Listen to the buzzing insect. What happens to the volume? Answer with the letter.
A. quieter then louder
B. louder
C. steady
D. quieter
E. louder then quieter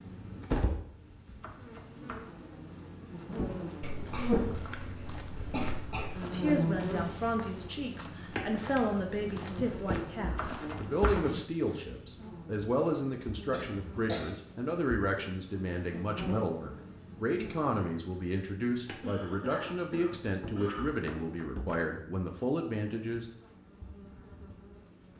D.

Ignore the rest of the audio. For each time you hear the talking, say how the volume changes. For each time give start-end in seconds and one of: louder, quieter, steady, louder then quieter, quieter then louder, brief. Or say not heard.
6.3-23.2 steady.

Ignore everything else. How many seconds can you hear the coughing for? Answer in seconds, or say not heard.
5 s.